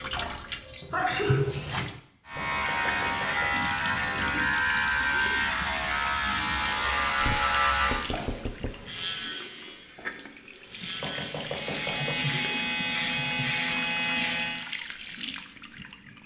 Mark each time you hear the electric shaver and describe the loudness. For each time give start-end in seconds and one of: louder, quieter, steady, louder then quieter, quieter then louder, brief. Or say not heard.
2.2-14.7 quieter then louder.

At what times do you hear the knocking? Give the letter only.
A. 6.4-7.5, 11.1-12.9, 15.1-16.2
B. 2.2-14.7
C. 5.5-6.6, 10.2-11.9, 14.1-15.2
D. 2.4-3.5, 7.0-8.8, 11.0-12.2
D.